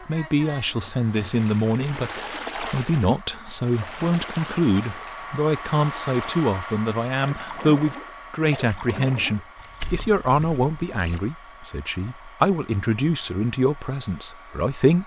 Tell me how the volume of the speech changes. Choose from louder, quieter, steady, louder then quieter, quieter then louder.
steady.